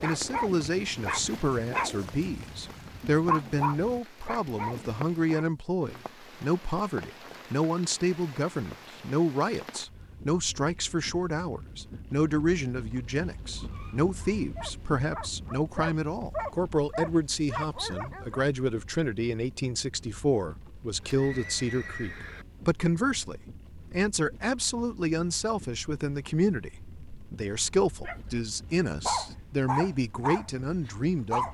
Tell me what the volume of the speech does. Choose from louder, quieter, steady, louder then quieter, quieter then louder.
steady.